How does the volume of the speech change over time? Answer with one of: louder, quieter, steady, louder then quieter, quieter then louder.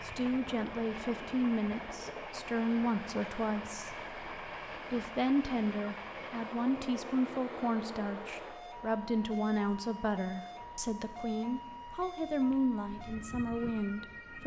steady.